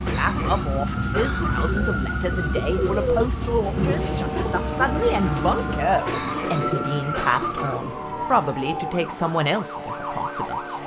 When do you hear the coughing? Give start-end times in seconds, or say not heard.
0.1-1.8, 6.0-7.8.